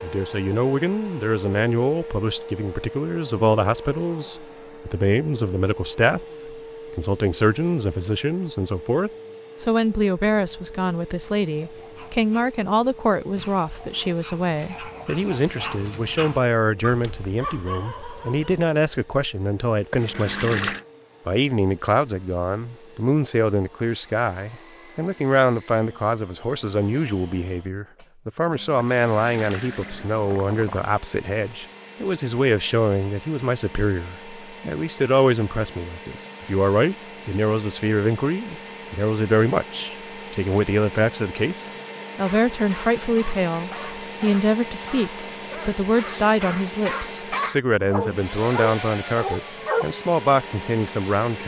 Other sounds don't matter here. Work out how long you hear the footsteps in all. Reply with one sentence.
The footsteps can't be heard in this clip.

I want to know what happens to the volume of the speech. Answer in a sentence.
The loudness of the speech stays about the same.